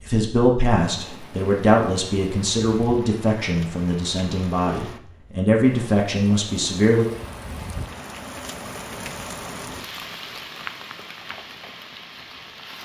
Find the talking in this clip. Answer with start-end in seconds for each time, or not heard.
0.1-7.0.